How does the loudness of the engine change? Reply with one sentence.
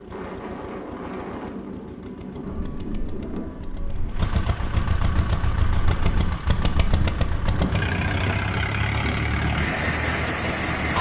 The loudness of the engine goes up.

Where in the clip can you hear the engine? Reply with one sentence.
The engine can be heard from 0.0 to 10.9 s.